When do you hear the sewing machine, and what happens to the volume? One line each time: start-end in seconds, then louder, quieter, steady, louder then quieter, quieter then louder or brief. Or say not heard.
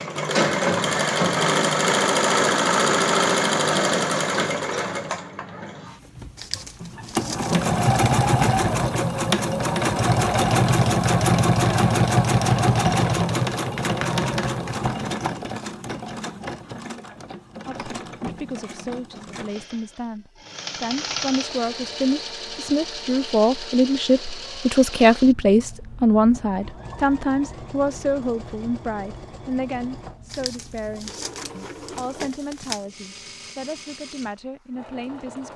0.0-35.5 quieter.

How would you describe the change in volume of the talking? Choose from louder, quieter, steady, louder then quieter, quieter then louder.
louder then quieter.